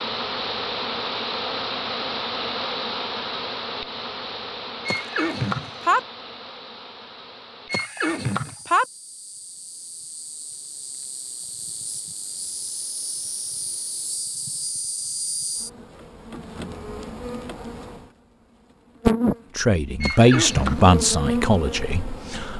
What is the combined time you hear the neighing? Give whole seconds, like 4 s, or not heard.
3 s.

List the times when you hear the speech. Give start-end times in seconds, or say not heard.
19.6-22.5.